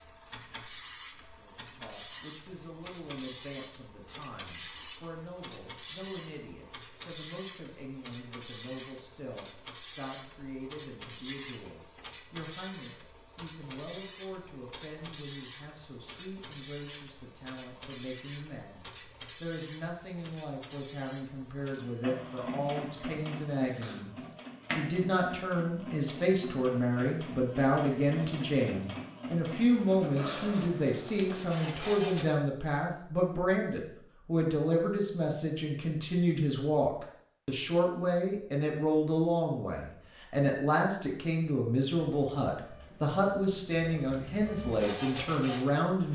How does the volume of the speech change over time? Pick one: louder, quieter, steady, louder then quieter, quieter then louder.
louder.